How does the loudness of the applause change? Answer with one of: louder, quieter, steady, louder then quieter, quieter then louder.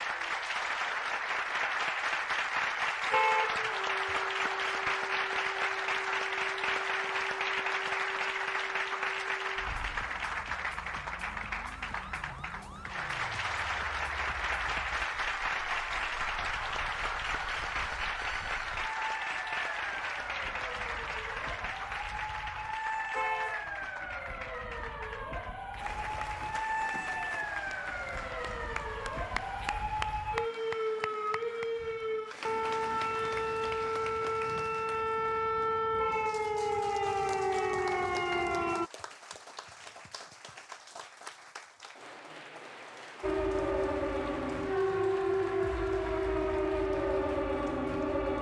quieter.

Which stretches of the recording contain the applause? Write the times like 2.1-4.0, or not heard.
0.0-48.3.